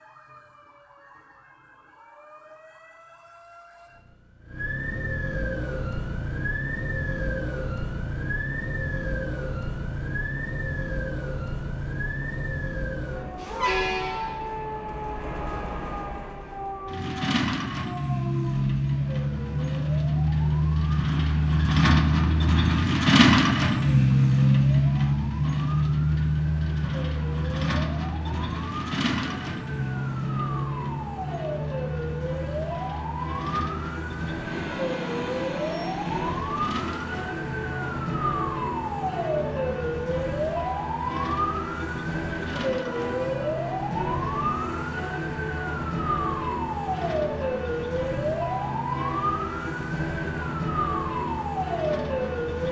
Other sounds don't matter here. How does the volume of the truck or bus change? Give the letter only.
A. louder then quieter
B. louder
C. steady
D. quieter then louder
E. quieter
A.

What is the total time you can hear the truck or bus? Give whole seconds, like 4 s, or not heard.
47 s.